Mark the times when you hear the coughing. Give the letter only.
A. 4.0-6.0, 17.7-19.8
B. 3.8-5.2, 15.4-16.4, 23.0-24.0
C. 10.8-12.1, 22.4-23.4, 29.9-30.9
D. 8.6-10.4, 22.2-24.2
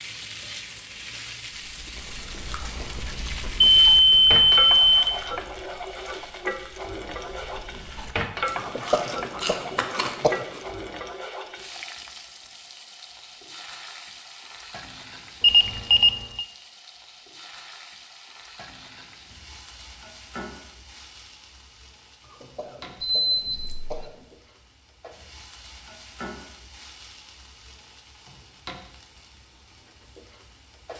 D.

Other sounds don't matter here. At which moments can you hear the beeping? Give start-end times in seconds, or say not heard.
3.8-5.2, 15.4-16.4, 23.0-24.0.